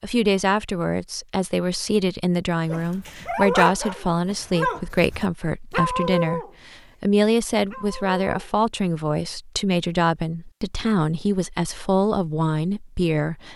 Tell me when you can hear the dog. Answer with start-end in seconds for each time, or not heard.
2.6-6.5, 7.7-8.5.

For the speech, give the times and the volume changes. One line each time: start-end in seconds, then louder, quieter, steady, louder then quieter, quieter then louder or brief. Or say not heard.
0.0-13.5 steady.